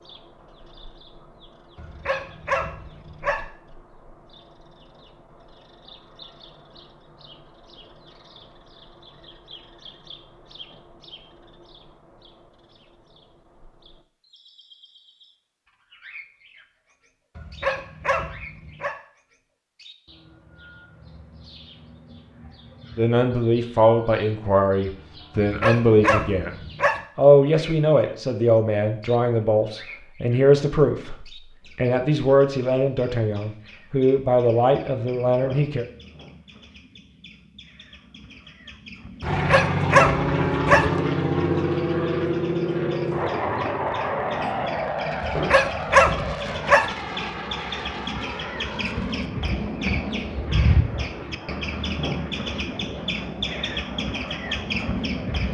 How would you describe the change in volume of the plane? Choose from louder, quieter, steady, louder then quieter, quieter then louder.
quieter.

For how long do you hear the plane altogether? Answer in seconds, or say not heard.
16 s.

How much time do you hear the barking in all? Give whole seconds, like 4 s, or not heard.
8 s.